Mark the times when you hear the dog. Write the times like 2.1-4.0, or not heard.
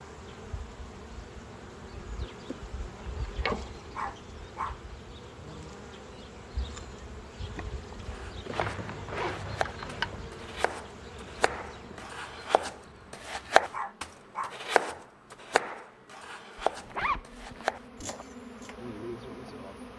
4.0-4.8, 13.7-14.6.